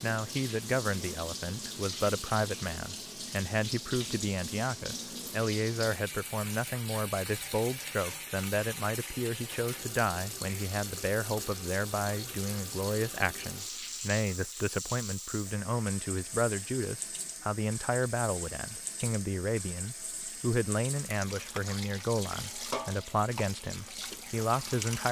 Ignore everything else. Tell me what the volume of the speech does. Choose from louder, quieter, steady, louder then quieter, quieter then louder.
steady.